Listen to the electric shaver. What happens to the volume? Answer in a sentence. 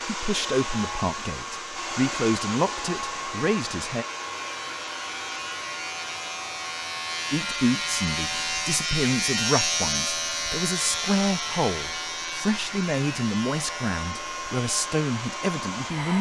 The volume of the electric shaver goes up, then down.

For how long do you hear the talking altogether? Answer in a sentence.
The talking can be heard for 13 seconds in total.